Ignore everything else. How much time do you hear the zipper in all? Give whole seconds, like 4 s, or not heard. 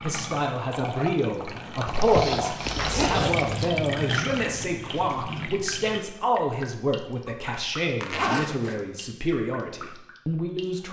3 s.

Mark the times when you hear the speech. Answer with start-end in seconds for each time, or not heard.
0.0-10.8.